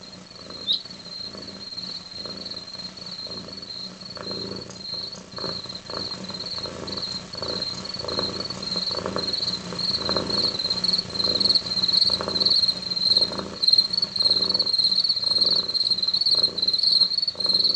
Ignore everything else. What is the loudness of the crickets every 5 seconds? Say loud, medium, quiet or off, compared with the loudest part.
quiet, medium, loud, loud.